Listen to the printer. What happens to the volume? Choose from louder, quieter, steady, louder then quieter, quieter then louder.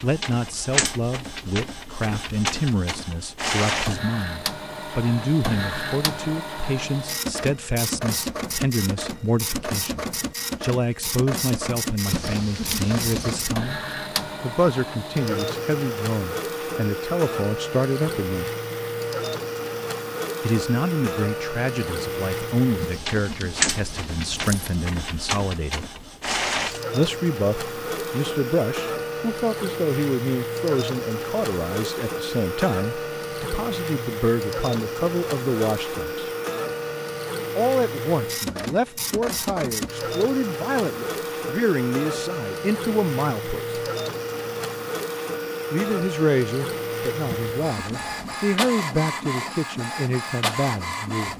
steady.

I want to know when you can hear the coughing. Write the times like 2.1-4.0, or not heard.
not heard.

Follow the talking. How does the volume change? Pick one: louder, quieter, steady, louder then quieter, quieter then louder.
steady.